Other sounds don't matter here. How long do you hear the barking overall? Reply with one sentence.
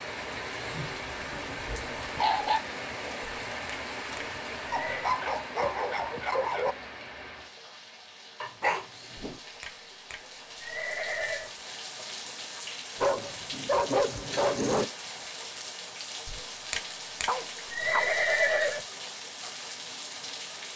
You can hear the barking for 8 seconds altogether.